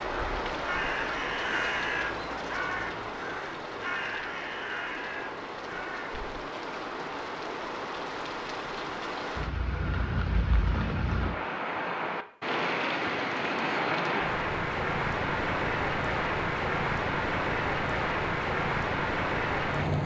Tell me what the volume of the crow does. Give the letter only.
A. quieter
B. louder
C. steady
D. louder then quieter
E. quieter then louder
A.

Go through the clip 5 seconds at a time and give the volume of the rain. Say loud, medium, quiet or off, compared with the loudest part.
medium, medium, loud, loud.